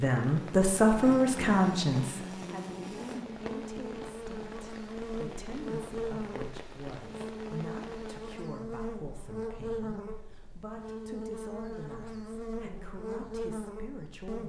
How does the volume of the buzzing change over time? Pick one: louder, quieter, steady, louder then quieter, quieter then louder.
steady.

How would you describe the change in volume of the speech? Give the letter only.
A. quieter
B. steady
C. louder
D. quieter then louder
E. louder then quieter
A.